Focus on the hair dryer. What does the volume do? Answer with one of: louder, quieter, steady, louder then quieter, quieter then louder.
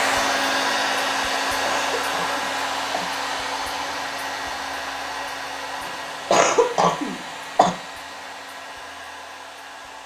quieter.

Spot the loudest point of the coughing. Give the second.
6 s.